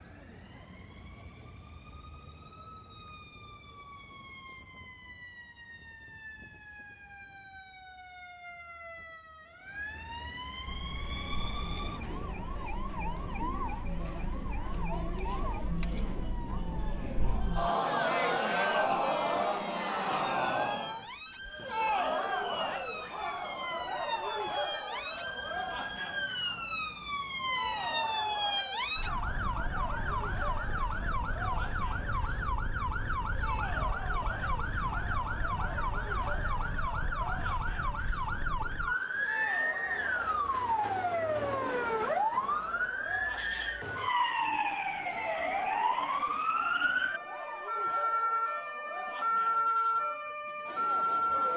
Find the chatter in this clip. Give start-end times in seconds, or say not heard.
10.7-51.5.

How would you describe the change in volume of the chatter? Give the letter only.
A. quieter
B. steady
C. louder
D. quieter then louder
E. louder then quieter
A.